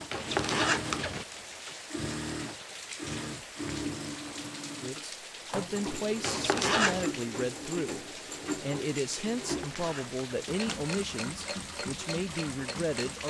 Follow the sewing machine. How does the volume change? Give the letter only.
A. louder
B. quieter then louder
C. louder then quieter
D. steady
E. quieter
D.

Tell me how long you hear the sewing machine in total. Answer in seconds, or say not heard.
13 s.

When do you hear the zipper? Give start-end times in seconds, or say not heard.
0.1-1.2, 6.2-7.1, 9.4-10.8.